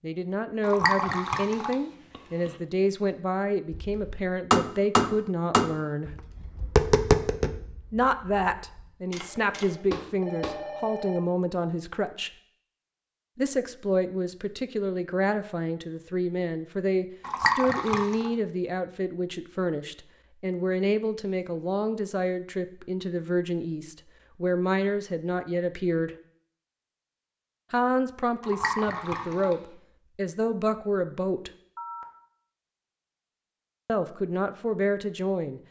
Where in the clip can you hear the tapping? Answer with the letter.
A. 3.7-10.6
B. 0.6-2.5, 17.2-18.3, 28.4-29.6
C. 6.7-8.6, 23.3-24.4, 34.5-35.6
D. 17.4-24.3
A.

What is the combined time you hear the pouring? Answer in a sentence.
The pouring can be heard for 4 seconds in total.